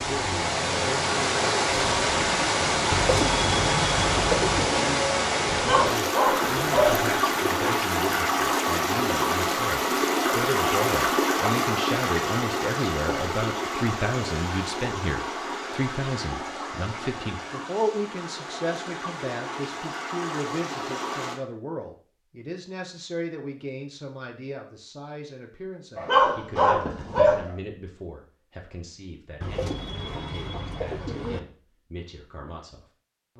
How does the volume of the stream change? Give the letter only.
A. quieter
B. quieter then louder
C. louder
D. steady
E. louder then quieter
A.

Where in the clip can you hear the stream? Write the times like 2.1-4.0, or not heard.
0.0-21.4.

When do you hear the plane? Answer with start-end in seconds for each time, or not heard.
not heard.